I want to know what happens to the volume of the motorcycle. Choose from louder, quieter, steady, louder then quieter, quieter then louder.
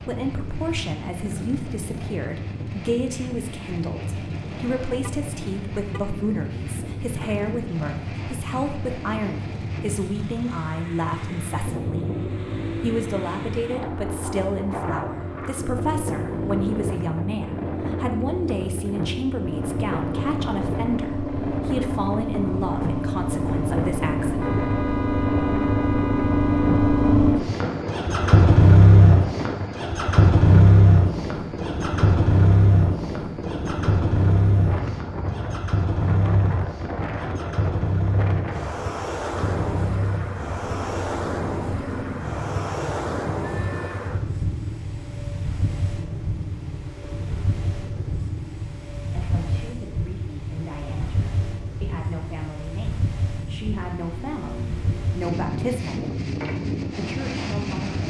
louder then quieter.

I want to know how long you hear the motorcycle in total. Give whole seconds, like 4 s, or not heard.
58 s.